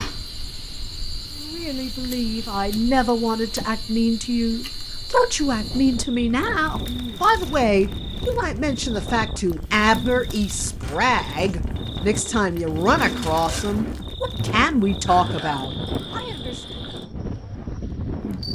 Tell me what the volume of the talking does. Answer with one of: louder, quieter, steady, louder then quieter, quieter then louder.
steady.